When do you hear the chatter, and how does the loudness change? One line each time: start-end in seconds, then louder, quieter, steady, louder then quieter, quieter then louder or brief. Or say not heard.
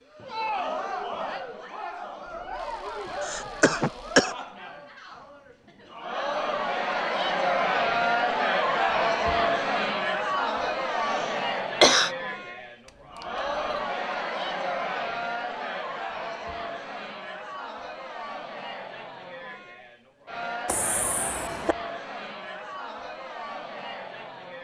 0.0-24.5 louder then quieter.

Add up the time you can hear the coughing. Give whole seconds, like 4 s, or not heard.
4 s.